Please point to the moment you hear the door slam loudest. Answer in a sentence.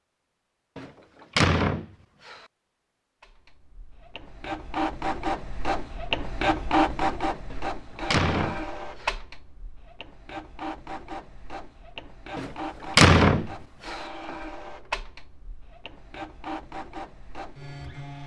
The volume of the door slam peaks at 13 seconds.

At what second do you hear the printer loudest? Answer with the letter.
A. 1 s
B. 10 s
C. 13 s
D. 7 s
D.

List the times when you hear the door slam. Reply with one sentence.
The door slam can be heard from 0.8 to 2.4 s, from 7.5 to 9.1 s and from 12.3 to 13.9 s.